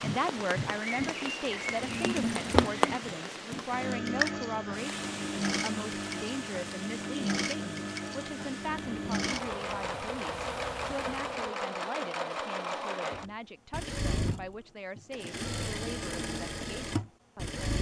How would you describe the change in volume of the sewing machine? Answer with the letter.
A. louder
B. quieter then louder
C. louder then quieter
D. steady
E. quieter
D.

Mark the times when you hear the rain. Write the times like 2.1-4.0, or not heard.
0.0-11.6.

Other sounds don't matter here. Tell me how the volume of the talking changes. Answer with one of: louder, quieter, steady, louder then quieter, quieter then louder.
quieter.